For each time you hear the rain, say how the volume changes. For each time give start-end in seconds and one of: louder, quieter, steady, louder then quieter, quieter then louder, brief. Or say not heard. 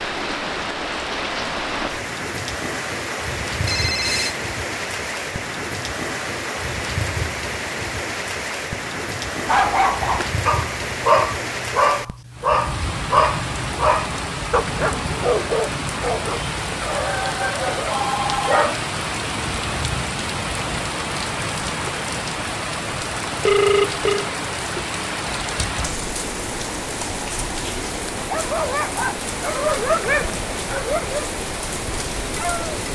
0.0-32.8 steady.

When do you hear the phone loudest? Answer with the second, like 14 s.
24 s.